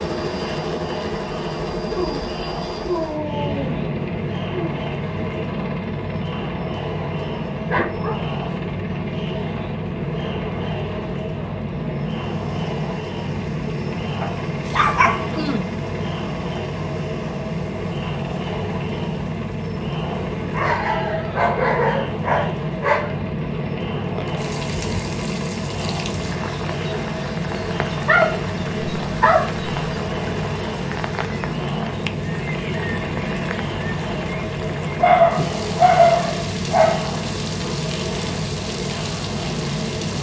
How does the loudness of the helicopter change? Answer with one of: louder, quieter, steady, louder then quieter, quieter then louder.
steady.